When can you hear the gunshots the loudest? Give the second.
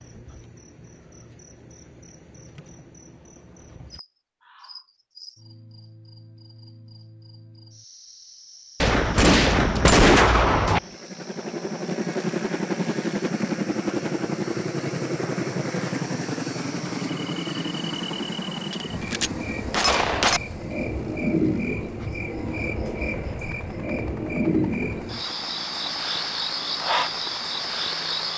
10 s.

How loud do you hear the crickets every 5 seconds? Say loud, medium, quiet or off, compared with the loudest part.
quiet, quiet, quiet, medium, loud, loud.